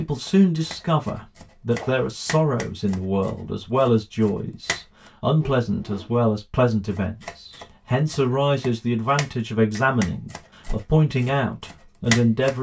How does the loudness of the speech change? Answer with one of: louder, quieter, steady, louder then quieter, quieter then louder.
steady.